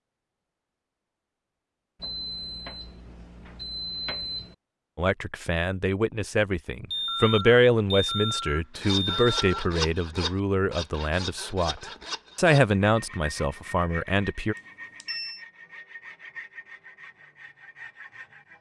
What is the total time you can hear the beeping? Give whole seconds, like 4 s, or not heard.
6 s.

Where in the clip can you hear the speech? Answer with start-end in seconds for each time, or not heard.
5.0-14.6.